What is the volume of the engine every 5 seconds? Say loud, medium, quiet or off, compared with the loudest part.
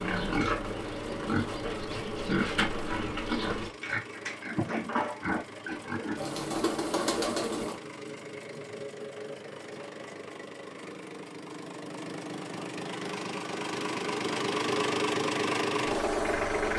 quiet, quiet, medium, loud.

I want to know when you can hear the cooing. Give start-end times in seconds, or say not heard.
6.2-7.8.